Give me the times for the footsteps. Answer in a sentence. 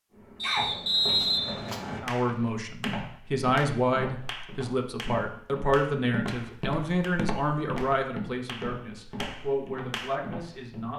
The footsteps can be heard from 0.1 to 10.9 s.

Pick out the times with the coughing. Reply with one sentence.
You can hear the coughing from 0.4 to 1.1 s.